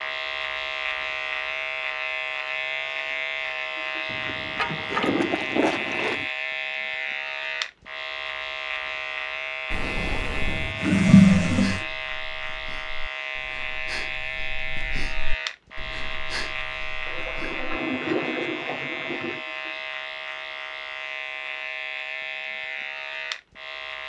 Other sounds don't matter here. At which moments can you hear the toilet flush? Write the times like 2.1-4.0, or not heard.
4.1-6.2, 10.4-11.8, 17.1-19.4.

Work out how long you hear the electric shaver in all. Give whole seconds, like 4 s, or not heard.
24 s.